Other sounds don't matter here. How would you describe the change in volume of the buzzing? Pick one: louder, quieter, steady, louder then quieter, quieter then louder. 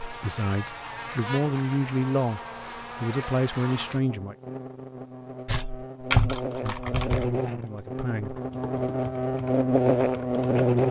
louder.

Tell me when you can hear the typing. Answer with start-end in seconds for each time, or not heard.
5.5-10.7.